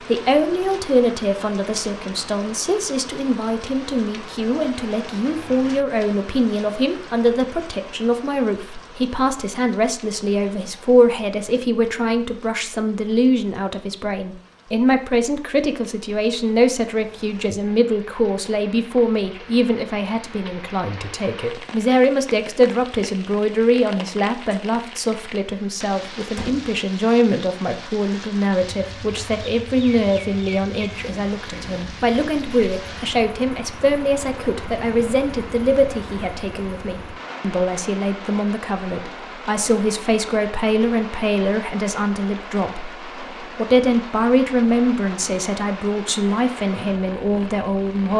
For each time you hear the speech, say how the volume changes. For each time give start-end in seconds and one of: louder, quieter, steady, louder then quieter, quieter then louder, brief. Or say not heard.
0.1-48.1 steady.